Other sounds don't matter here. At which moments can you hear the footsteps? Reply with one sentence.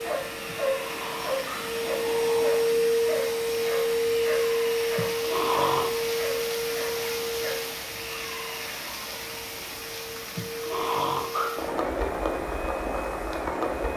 You can't hear the footsteps here.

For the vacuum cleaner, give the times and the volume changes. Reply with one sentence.
You can hear the vacuum cleaner from 0.0 to 13.9 s, getting quieter.